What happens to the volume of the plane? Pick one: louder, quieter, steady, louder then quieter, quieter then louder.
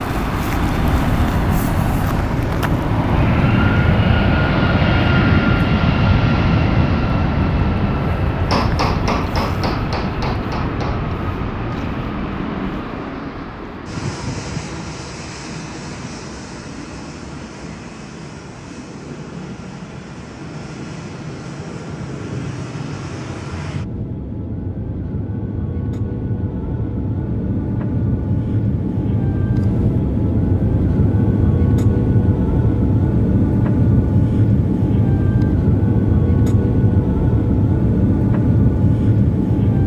quieter then louder.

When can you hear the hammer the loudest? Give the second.
9 s.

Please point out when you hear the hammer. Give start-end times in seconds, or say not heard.
8.5-11.2.